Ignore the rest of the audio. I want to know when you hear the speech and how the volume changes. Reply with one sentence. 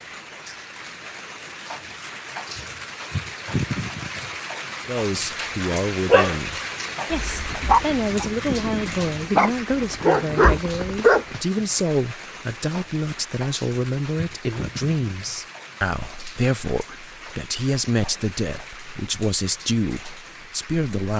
You can hear the speech from 4.8 to 21.1 s, at a steady volume.